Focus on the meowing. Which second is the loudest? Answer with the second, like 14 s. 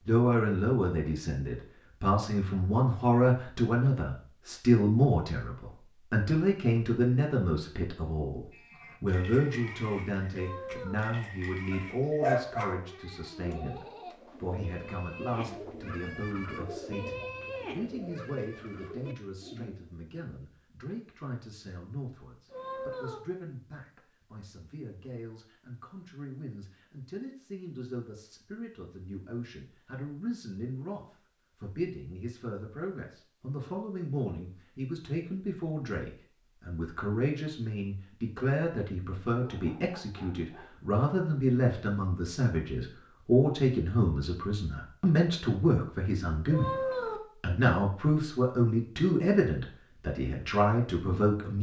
47 s.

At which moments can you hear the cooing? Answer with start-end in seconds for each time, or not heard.
13.3-20.0.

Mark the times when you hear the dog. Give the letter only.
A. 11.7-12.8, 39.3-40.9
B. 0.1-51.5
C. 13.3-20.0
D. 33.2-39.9
A.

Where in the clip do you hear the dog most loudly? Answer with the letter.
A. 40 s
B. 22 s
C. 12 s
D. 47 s
C.